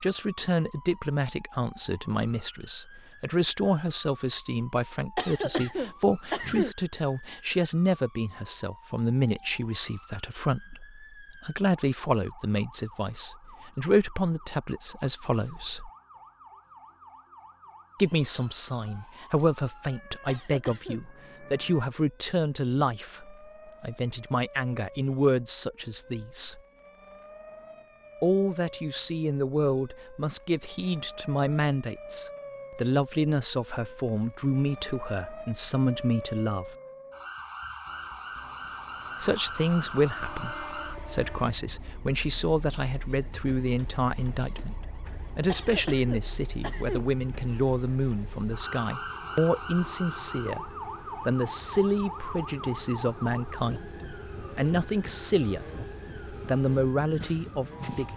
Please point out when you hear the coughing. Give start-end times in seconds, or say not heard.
5.2-6.8, 20.2-21.1, 45.5-47.0.